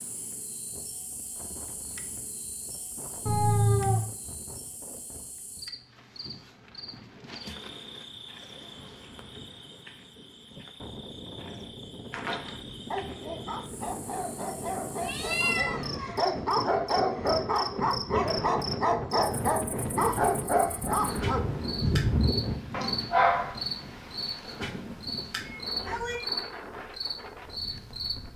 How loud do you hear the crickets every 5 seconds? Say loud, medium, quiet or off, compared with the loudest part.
medium, medium, quiet, loud, loud, loud.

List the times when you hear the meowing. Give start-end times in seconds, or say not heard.
3.2-4.0, 15.0-16.2, 25.4-26.2.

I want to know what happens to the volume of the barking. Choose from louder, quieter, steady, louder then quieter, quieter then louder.
louder.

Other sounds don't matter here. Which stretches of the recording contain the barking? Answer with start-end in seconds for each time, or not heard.
12.1-23.6.